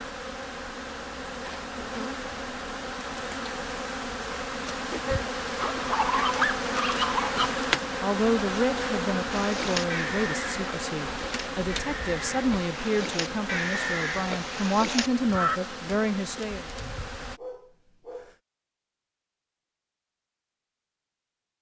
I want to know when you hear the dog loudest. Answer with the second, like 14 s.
6 s.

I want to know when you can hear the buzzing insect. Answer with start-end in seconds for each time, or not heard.
0.0-17.4.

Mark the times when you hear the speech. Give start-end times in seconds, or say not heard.
8.0-16.6.